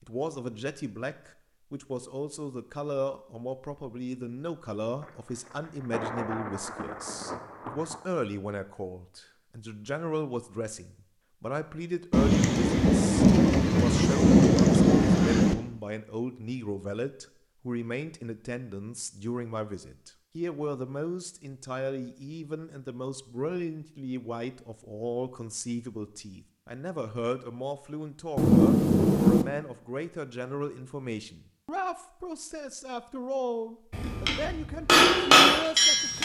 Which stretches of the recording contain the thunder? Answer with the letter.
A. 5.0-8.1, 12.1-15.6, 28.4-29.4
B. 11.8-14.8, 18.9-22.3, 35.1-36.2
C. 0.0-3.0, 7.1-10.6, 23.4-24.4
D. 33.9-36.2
A.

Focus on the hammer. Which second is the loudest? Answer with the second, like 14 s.
35 s.